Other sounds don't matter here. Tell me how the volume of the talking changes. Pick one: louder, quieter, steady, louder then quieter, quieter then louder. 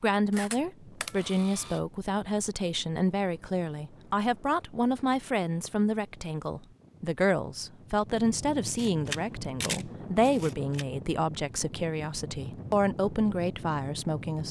steady.